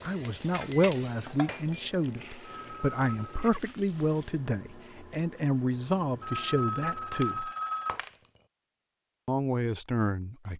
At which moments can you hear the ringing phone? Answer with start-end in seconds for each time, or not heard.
2.5-3.5, 6.2-8.0.